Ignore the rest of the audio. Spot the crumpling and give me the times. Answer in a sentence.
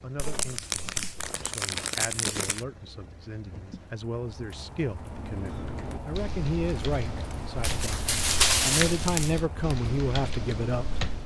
You can hear the crumpling from 0.1 to 2.6 s and from 7.6 to 9.4 s.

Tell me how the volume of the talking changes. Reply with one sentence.
The loudness of the talking goes up.